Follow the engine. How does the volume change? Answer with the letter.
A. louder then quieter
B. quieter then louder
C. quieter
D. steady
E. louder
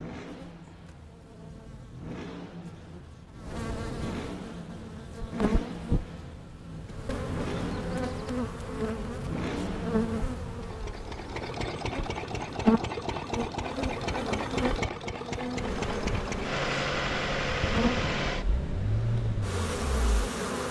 E.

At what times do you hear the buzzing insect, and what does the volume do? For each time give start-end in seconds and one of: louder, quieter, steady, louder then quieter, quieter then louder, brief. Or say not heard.
0.2-20.6 louder.